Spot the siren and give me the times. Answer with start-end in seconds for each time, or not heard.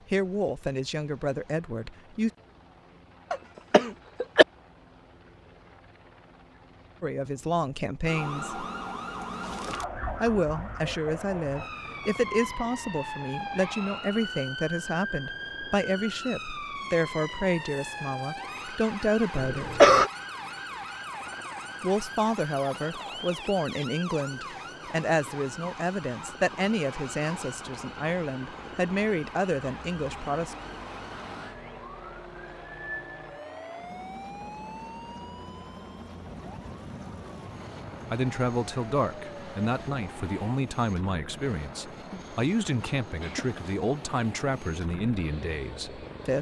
8.1-40.6.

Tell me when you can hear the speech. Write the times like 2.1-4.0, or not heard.
0.1-2.3, 7.0-8.7, 10.2-19.9, 21.8-30.6, 38.1-46.3.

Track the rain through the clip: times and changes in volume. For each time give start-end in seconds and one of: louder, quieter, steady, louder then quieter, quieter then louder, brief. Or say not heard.
not heard.